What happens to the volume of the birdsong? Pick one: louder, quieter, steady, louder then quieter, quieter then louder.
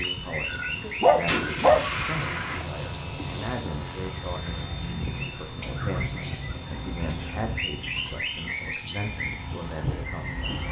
quieter then louder.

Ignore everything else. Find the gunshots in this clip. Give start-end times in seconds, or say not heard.
1.2-2.6.